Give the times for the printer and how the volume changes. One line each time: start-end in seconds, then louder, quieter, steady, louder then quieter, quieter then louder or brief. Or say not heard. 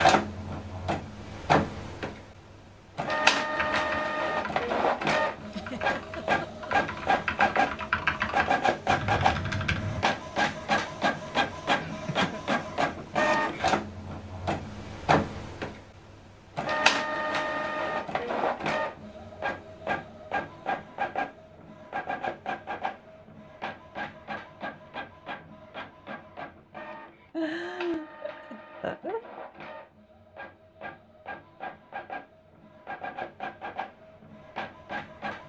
0.0-35.4 quieter.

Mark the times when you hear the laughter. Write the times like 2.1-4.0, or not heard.
5.5-6.7, 11.8-12.4, 27.3-29.2.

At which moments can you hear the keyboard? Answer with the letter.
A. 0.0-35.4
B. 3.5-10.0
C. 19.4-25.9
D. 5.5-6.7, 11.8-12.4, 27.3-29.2
B.